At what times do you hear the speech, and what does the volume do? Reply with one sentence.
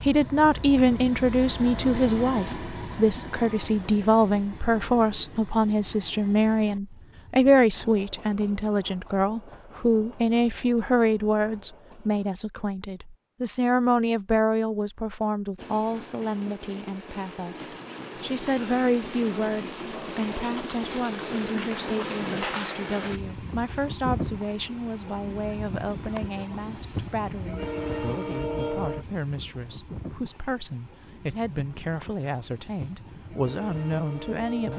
The speech can be heard from 0.0 to 34.7 s, getting quieter.